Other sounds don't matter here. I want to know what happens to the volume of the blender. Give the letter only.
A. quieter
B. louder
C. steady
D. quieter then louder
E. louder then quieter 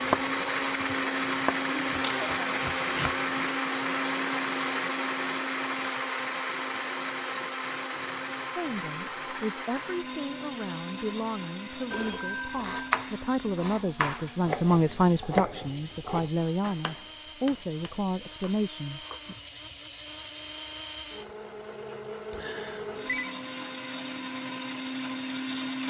D.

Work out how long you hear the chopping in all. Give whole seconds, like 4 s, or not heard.
10 s.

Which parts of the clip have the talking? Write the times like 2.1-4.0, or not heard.
8.6-19.4.